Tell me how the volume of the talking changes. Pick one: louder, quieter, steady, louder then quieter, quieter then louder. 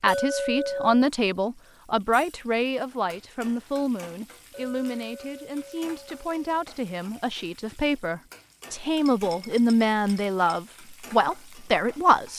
quieter then louder.